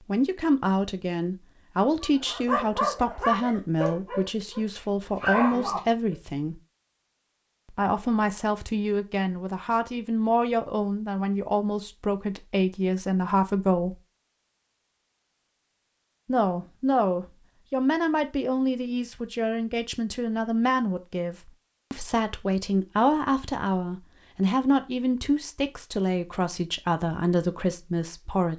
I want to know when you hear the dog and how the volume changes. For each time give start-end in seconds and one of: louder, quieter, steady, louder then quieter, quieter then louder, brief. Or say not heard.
2.0-6.2 quieter then louder.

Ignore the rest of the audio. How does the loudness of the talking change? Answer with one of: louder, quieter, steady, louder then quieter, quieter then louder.
steady.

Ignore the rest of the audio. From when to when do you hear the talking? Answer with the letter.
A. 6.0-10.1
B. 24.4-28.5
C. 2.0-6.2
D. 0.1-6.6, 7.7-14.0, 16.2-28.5
D.